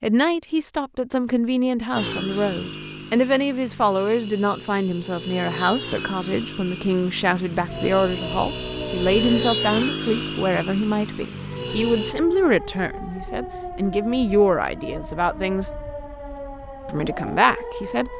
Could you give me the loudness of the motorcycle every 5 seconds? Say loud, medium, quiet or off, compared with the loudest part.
medium, loud, loud, off.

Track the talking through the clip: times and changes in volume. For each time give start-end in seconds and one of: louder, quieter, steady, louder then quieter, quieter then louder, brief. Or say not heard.
0.0-15.8 steady
16.9-18.1 brief.